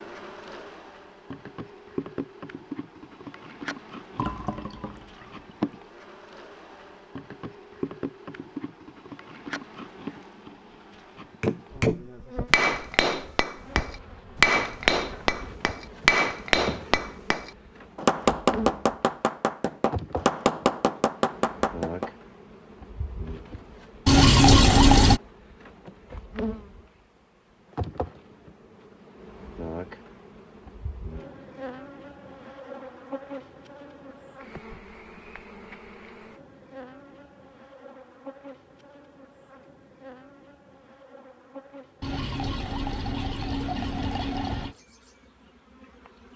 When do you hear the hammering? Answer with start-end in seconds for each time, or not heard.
11.4-22.1.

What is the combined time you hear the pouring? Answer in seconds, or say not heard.
5 s.